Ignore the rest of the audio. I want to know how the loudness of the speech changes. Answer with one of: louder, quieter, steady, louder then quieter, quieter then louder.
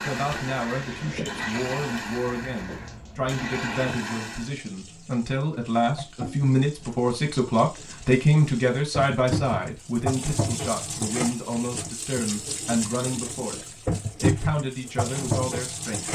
louder then quieter.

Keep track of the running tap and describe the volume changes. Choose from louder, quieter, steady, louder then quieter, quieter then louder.
louder.